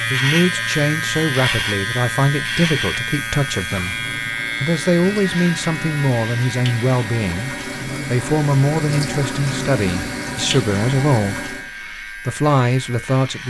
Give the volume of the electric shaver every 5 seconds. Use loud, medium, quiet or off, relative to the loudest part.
loud, medium, medium.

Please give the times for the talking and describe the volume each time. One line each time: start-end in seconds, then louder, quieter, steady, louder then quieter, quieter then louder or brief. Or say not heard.
0.1-13.4 steady.